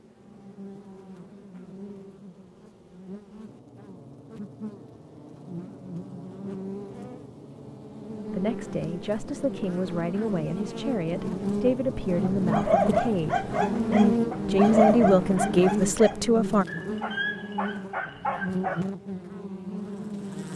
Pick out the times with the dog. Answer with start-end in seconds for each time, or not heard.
12.2-18.9.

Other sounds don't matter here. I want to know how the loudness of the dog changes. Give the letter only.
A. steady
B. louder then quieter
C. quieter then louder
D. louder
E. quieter
E.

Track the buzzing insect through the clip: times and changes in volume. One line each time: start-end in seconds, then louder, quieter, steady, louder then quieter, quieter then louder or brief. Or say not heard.
0.0-20.5 louder then quieter.